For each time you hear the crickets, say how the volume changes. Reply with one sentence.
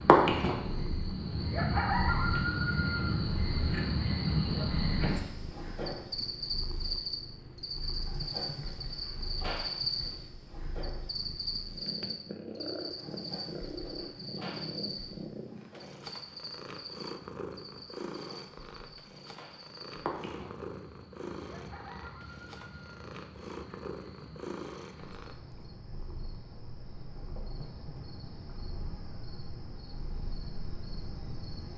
The crickets can be heard from 0.0 to 31.7 s, getting quieter.